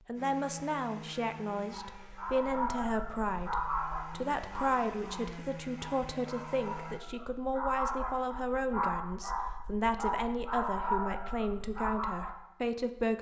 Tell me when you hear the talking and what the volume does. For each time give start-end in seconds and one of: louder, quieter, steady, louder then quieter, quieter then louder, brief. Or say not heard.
0.1-13.1 steady.